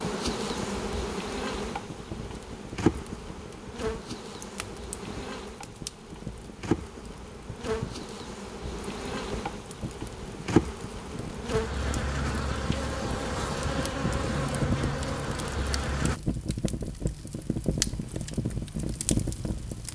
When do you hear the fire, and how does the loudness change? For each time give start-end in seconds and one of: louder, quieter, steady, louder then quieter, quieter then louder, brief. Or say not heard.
0.1-19.9 louder.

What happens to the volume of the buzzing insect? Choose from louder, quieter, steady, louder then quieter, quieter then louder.
quieter then louder.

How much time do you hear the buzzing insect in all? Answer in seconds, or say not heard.
16 s.